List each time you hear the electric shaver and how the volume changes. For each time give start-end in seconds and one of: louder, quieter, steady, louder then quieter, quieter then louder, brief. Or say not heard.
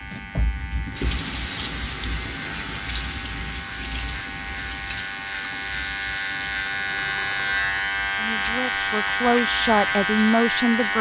0.0-10.9 louder.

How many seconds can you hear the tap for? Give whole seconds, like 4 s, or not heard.
11 s.